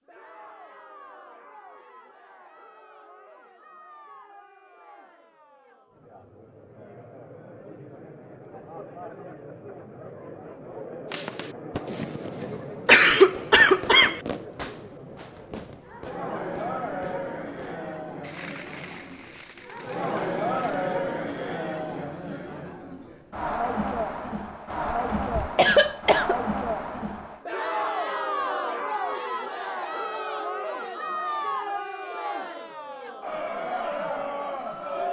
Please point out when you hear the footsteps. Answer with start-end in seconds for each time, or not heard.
not heard.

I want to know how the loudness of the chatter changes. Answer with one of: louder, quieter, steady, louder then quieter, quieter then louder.
louder.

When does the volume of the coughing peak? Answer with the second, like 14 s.
13 s.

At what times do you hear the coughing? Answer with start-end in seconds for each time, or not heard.
12.8-14.2, 24.7-26.4.